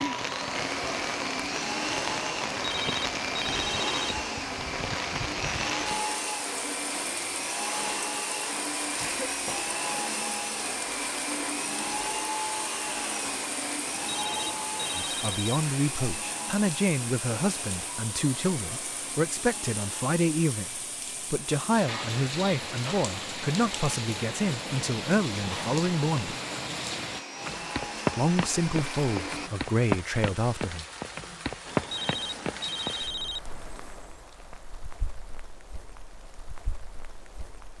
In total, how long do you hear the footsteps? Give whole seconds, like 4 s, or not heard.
not heard.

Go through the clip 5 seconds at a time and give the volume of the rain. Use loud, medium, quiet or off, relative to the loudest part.
loud, medium, medium, medium, loud, loud, loud, quiet.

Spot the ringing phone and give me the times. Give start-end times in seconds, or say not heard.
2.5-4.0, 13.8-15.6, 31.6-33.4.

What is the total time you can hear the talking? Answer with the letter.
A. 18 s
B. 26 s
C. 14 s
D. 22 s
C.